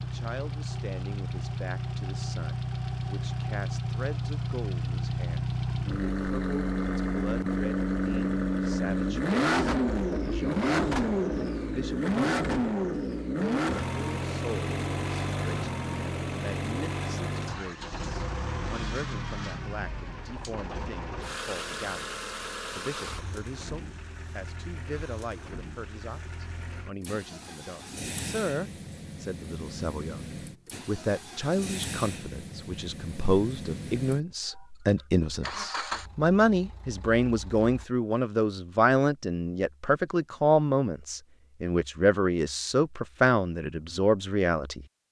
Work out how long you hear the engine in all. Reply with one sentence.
The engine can be heard for 38 seconds in total.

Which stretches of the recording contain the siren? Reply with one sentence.
The siren can't be heard in this clip.